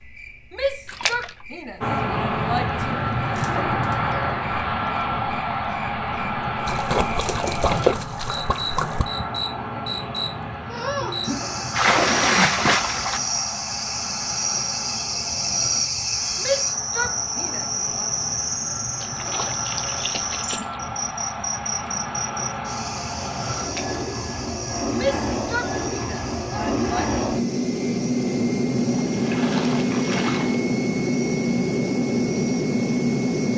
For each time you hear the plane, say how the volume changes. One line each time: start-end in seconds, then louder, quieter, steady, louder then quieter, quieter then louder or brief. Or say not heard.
1.8-33.5 quieter then louder.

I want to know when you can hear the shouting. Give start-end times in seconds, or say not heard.
0.5-3.0, 16.4-18.1, 24.9-27.1.